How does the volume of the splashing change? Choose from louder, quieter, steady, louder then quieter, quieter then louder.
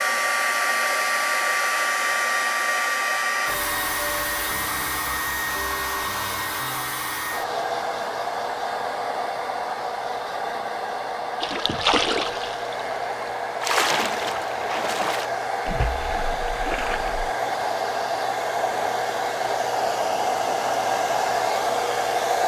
quieter.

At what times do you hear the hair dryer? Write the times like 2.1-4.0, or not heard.
0.0-22.4.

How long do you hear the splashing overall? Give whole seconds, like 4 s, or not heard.
6 s.